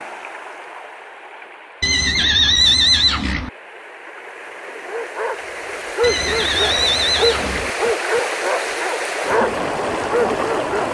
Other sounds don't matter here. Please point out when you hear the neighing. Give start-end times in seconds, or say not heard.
1.8-3.5, 6.0-7.7.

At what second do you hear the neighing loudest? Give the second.
3 s.